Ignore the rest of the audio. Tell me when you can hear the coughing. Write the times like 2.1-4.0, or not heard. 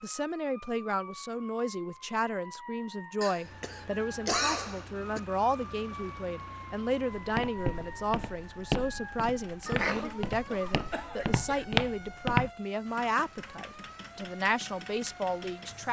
3.2-5.2, 9.7-11.7.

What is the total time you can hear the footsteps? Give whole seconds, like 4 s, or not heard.
5 s.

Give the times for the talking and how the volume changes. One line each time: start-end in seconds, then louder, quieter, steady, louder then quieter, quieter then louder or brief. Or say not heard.
0.0-15.8 steady.